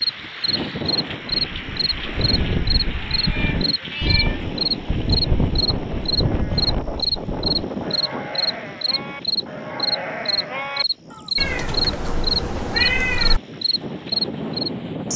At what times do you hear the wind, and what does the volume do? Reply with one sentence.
You can hear the wind from 0.0 to 15.1 s, getting quieter then louder.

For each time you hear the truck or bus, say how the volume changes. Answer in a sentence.
You can't hear the truck or bus here.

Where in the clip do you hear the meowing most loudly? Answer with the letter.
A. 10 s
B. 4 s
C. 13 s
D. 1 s
C.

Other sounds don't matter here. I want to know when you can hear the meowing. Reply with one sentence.
The meowing can be heard from 3.1 to 4.4 s and from 11.3 to 13.4 s.